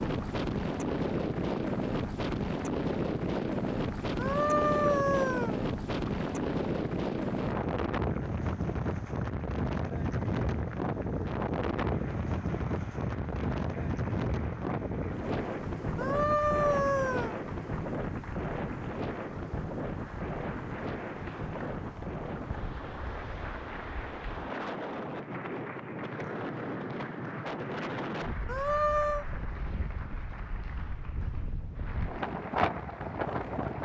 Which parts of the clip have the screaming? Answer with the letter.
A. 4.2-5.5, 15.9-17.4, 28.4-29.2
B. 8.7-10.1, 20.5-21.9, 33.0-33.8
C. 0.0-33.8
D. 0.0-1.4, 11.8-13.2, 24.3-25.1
A.